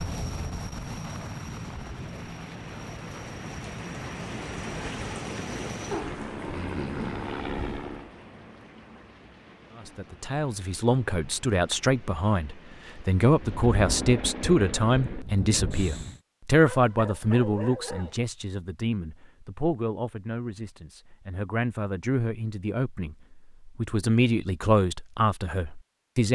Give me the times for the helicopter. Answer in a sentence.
You can hear the helicopter from 0.0 to 8.2 s and from 13.3 to 16.2 s.